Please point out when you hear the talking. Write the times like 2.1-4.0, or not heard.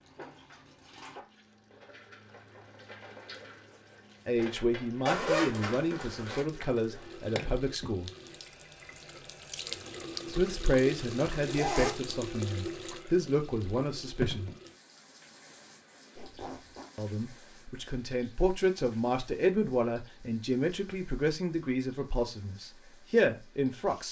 4.2-8.1, 10.2-14.5, 16.9-24.0.